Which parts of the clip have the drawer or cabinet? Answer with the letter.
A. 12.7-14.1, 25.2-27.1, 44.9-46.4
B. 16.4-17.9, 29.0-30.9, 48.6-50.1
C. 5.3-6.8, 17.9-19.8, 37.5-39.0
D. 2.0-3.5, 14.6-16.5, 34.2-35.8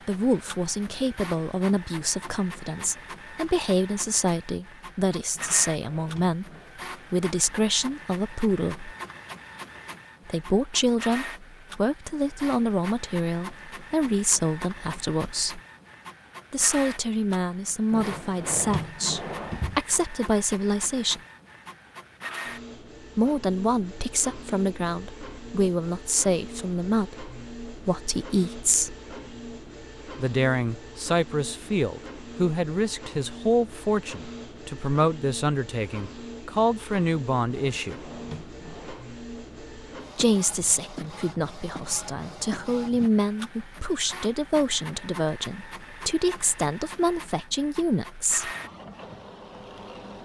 C.